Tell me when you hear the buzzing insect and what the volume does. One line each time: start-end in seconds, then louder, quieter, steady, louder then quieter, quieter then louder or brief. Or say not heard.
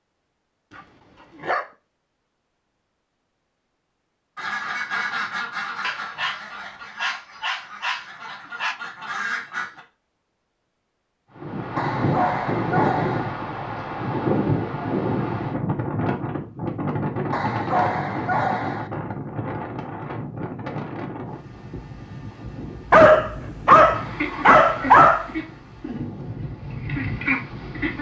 not heard.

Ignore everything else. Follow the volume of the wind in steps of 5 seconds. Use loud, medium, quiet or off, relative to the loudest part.
off, off, loud, loud, medium, quiet.